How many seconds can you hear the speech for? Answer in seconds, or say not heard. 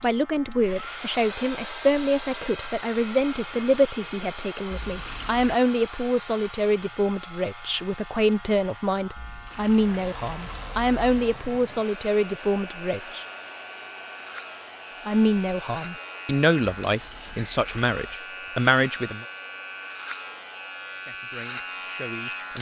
19 s.